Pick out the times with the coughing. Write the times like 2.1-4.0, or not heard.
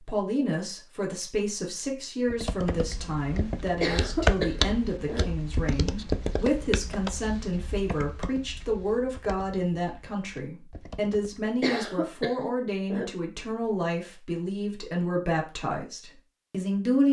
3.8-5.2, 11.6-13.1.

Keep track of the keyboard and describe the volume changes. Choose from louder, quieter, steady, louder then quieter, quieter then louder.
quieter.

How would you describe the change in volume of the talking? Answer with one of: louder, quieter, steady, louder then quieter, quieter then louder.
steady.